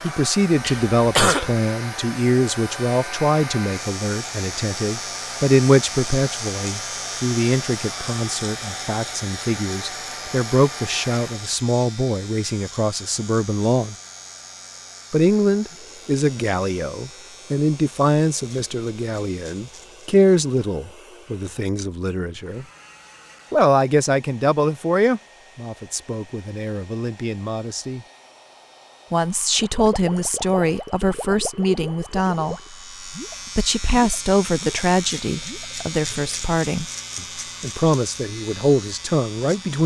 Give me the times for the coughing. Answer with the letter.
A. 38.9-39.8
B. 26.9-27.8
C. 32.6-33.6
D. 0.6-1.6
D.